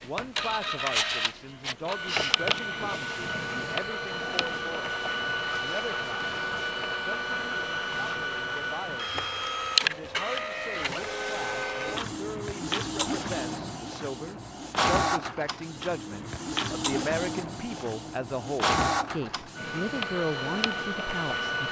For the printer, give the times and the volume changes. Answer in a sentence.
You can hear the printer from 0.0 to 21.6 s, at a steady volume.